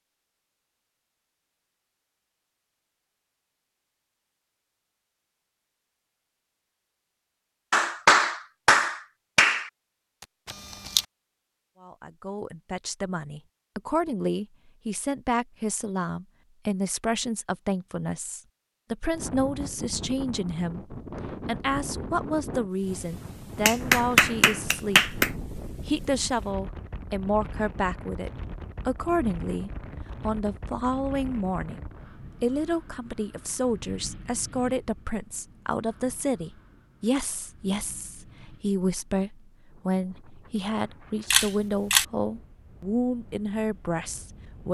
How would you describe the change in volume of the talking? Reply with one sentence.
The volume of the talking stays about the same.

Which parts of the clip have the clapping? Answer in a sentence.
The clapping can be heard from 7.7 to 9.7 s and from 23.6 to 25.3 s.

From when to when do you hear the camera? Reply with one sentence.
The camera can be heard from 10.4 to 11.1 s and from 41.3 to 42.0 s.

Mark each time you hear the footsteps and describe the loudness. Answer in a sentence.
The footsteps can't be heard in this clip.